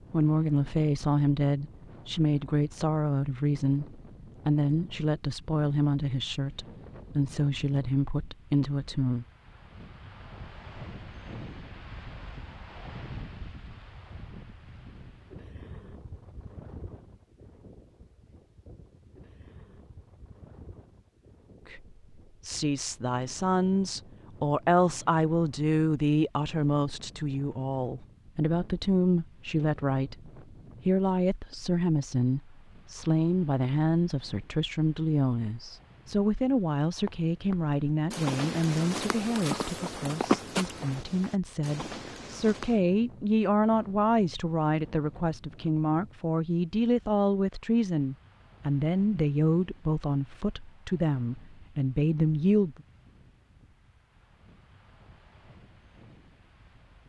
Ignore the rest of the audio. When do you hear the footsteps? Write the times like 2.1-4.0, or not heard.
37.0-42.8.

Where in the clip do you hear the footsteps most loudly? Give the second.
40 s.